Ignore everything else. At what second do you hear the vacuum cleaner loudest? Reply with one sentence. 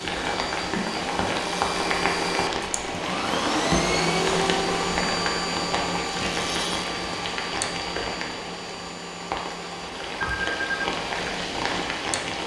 The loudest moment of the vacuum cleaner is at 4 seconds.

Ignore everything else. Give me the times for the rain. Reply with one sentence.
You can hear the rain from 0.0 to 12.4 s.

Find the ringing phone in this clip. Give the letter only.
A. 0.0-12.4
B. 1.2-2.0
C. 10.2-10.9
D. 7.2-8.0
C.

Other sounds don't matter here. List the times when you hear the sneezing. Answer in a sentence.
The sneezing can't be heard in this clip.